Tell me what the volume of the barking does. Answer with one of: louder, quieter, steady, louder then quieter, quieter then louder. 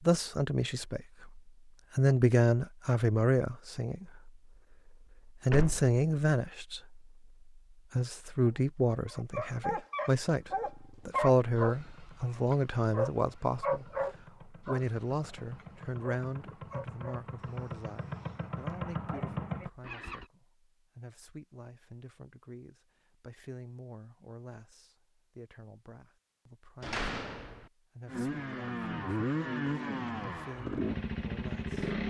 quieter.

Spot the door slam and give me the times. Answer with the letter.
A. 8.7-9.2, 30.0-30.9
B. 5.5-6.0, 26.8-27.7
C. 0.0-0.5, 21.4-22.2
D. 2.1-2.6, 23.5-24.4
B.